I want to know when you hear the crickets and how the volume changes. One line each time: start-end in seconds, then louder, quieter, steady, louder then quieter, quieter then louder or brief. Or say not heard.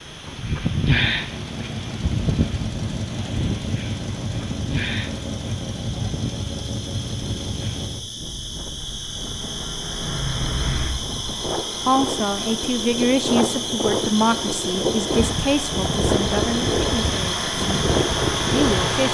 0.0-19.0 louder.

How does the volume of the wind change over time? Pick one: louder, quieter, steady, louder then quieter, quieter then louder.
quieter then louder.